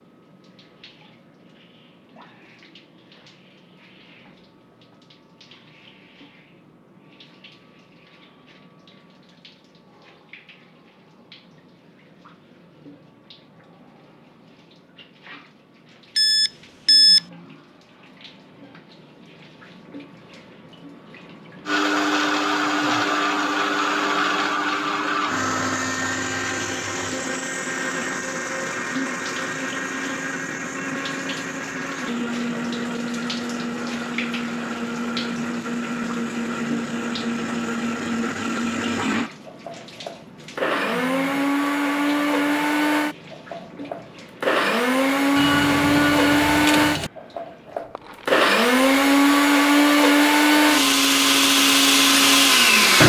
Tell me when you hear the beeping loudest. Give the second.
17 s.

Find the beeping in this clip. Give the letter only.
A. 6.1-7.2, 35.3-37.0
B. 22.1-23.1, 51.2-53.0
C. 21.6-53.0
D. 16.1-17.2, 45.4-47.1
D.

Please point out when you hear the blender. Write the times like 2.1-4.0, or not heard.
21.6-53.0.